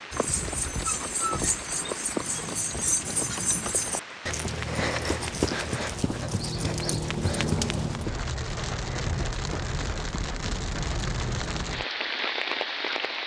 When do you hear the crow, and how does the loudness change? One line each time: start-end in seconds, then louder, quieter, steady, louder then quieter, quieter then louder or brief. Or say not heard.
not heard.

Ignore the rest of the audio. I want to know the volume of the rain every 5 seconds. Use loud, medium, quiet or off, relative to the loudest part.
medium, loud, loud.